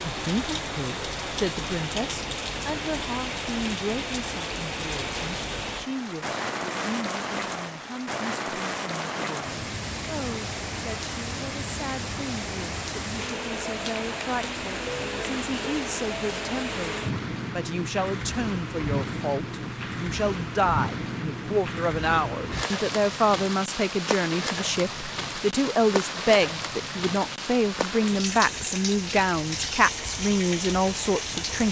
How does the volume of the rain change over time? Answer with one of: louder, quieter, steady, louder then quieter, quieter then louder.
steady.